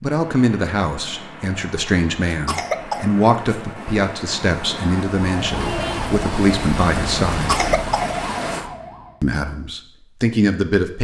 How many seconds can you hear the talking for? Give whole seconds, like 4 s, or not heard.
9 s.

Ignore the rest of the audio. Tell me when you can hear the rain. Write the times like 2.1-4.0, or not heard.
0.1-8.7.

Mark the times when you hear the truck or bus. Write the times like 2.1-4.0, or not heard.
not heard.